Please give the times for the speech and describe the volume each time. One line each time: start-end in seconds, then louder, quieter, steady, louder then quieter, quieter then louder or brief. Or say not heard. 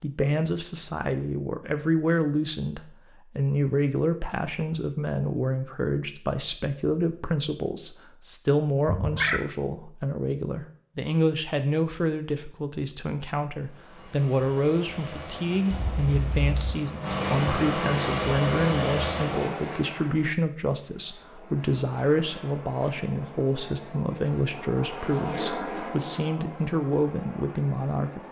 0.0-28.2 steady.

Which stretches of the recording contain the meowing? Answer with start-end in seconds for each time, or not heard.
8.8-9.4, 15.7-16.8.